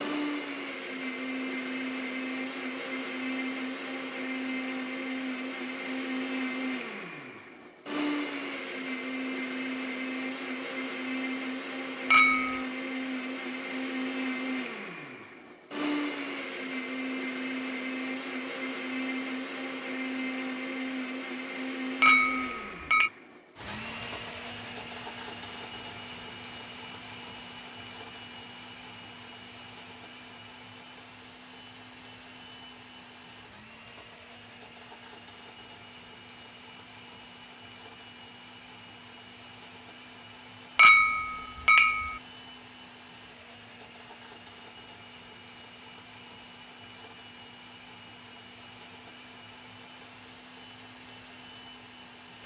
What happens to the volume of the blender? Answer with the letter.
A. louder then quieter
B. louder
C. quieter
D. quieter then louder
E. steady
C.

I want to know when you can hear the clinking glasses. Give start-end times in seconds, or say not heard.
12.1-12.7, 22.0-23.1, 40.8-42.2.